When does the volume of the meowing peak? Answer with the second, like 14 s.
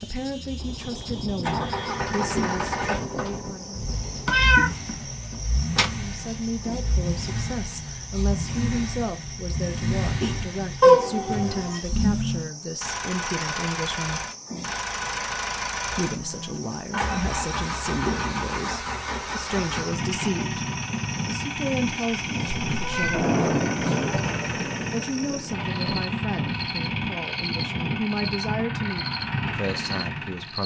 11 s.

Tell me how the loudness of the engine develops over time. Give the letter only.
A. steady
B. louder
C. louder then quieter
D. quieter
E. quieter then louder
A.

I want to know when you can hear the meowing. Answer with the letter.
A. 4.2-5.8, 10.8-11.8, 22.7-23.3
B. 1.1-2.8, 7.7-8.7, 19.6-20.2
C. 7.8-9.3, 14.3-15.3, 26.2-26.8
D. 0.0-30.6
A.